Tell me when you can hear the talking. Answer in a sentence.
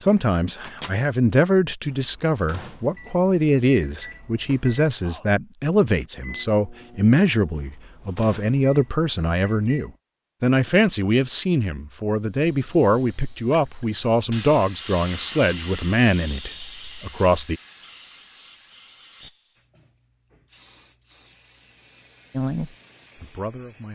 The talking can be heard from 0.0 to 17.6 s and from 22.3 to 23.8 s.